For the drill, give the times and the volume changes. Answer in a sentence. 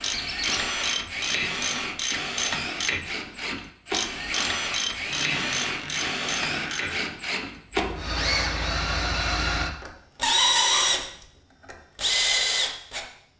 You can hear the drill from 0.0 to 13.1 s, getting louder.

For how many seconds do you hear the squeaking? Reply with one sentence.
You can hear the squeaking for 3 seconds altogether.